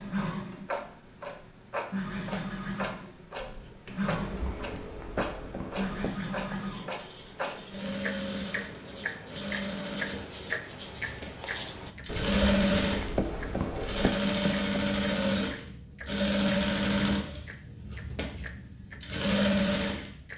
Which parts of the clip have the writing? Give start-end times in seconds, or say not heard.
3.4-14.9.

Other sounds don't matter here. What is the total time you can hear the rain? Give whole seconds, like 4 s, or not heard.
not heard.